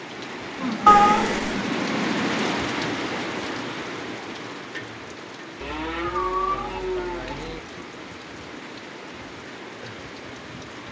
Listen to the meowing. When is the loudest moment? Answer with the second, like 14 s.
1 s.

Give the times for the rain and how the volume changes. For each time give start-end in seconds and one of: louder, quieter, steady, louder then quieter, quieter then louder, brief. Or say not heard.
0.0-10.8 quieter.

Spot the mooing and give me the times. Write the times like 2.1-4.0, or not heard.
0.6-2.5, 5.6-7.6.